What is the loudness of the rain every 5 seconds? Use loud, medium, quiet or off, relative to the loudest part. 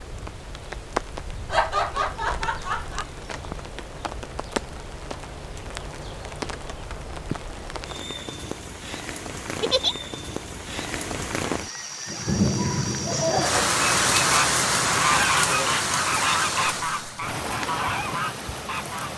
medium, medium, loud, loud.